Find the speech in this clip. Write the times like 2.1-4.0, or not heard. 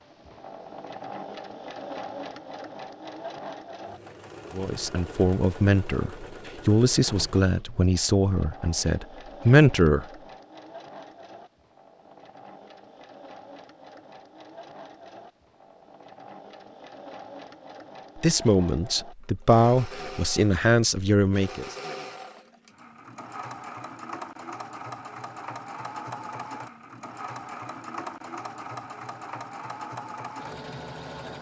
4.5-10.1, 18.1-21.8.